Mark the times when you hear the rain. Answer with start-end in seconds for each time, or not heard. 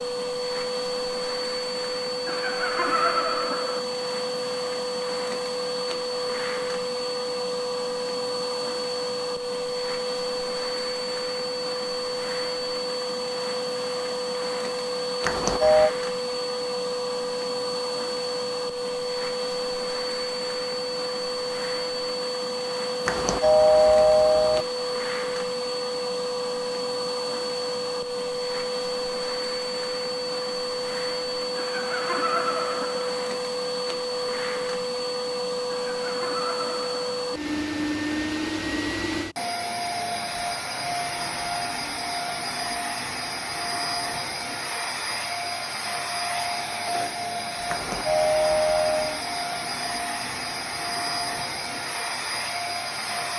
not heard.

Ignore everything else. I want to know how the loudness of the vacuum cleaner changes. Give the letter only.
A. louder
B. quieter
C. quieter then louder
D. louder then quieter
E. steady
E.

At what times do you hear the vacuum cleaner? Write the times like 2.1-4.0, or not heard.
0.0-53.3.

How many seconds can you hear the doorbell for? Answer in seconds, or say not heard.
4 s.